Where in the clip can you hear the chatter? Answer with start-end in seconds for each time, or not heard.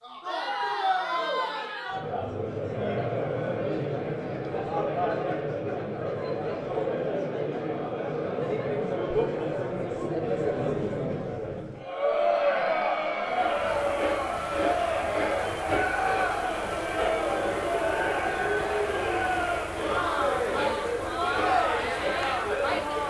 0.0-23.0.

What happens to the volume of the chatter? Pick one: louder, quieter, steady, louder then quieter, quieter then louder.
steady.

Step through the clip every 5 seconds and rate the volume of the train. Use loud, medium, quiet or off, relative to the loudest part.
off, off, loud, loud, loud.